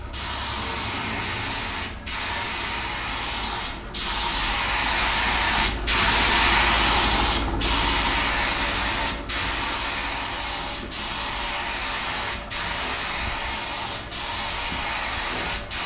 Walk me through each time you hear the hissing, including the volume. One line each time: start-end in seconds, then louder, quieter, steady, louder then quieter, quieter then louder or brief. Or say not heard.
0.0-15.8 louder then quieter.